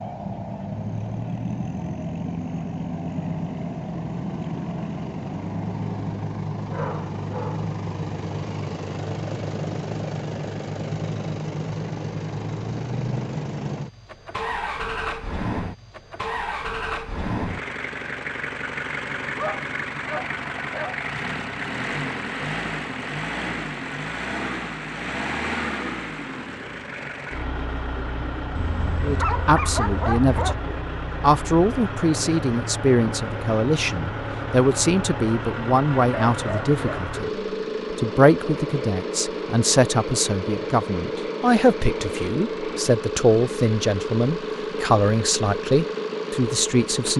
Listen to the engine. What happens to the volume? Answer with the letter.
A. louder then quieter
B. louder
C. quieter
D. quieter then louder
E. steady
E.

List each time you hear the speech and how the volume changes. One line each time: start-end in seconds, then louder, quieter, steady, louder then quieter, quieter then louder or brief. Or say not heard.
29.0-37.3 steady
37.9-47.1 steady.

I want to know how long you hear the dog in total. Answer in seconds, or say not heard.
6 s.